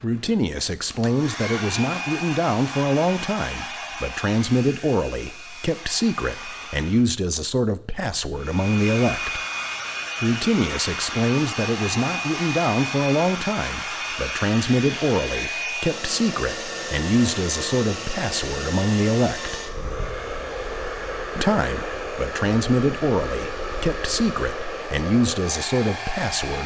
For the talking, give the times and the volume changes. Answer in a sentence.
You can hear the talking from 0.0 to 9.4 s, at a steady volume; from 10.2 to 19.6 s, at a steady volume; and from 21.4 to 26.6 s, at a steady volume.